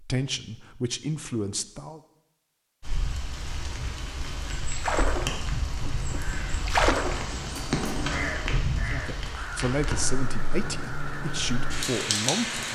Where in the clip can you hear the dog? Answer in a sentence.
You can't hear the dog here.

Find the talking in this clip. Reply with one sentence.
You can hear the talking from 0.0 to 2.0 s and from 8.8 to 12.6 s.